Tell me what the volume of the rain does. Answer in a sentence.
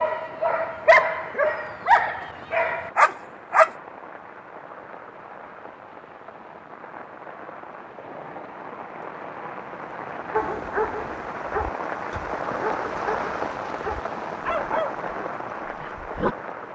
The volume of the rain goes up.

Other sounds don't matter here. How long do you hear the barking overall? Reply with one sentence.
The barking can be heard for 10 seconds in total.